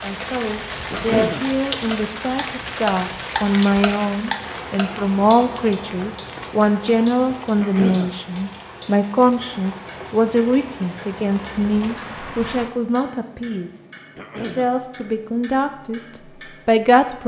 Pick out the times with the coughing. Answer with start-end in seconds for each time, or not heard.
0.9-1.4, 7.5-8.1, 14.2-14.7.